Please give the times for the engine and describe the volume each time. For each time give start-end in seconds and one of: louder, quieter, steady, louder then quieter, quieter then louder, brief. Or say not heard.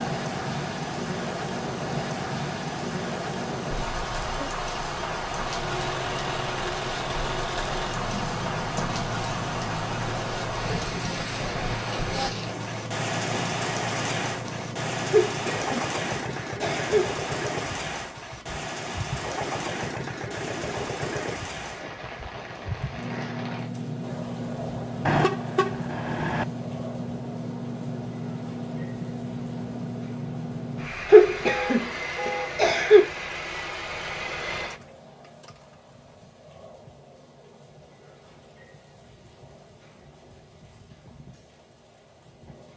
5.5-35.6 steady.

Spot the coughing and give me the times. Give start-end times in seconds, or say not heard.
15.1-17.1, 31.1-33.0.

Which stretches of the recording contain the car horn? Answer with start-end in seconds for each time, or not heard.
4.0-4.5, 25.1-26.4, 31.4-32.5.